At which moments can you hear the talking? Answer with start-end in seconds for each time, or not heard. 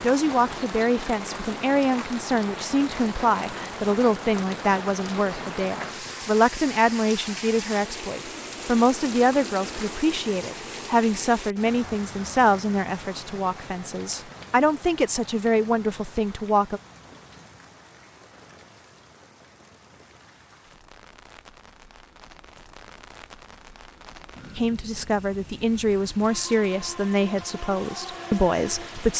0.0-16.8, 24.6-29.1.